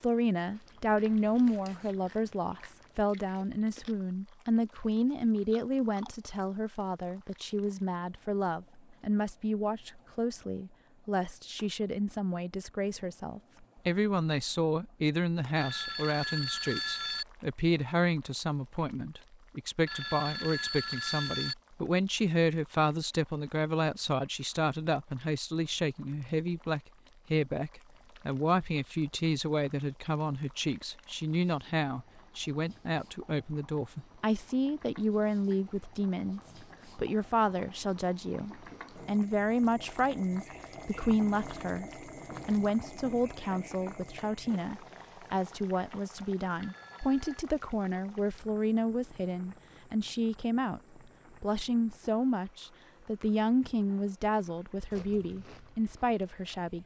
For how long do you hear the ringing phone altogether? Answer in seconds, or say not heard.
4 s.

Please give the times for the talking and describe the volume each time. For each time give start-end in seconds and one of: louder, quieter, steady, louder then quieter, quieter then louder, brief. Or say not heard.
0.0-56.8 steady.